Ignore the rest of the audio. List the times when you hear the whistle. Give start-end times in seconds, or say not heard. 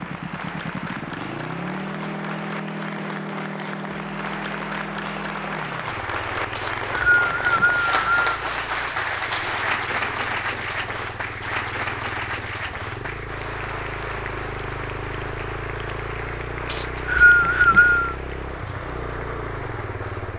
6.5-8.2, 16.6-18.1.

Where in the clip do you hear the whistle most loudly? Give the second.
17 s.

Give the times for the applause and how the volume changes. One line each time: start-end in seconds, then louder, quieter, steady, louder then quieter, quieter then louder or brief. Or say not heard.
0.0-20.3 louder then quieter.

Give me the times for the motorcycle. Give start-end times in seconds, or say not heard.
0.0-20.3.